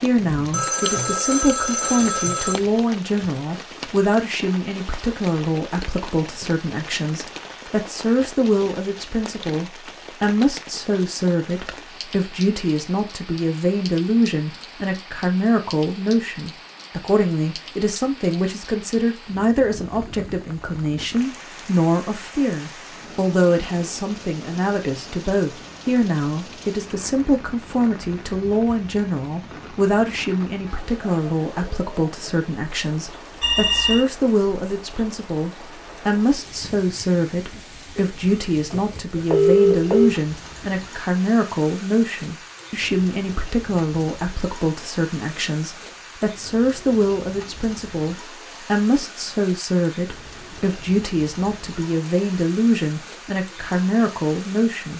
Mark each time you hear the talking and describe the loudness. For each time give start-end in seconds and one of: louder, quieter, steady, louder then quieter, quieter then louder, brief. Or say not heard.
0.0-54.9 steady.